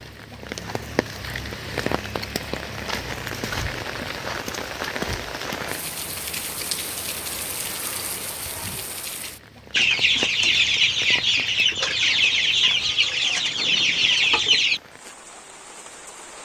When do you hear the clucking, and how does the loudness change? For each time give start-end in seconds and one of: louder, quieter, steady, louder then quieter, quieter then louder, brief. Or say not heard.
9.7-14.8 steady.